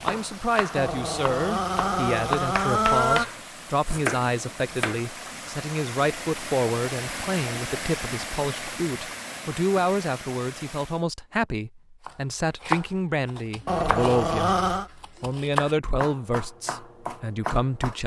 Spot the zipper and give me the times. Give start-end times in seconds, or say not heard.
not heard.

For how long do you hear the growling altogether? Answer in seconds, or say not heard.
4 s.